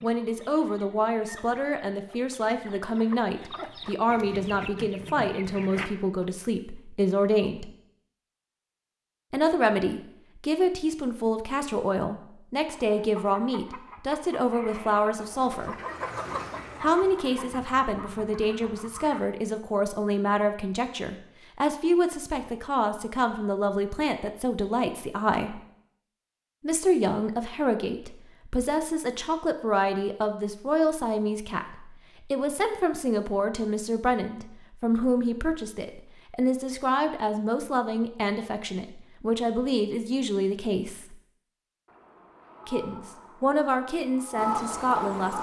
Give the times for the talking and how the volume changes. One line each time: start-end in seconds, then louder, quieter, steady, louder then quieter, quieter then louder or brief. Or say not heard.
0.0-7.7 steady
9.3-15.8 steady
16.8-25.6 steady
26.6-41.1 steady
42.6-45.3 brief.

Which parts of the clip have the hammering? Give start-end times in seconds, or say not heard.
not heard.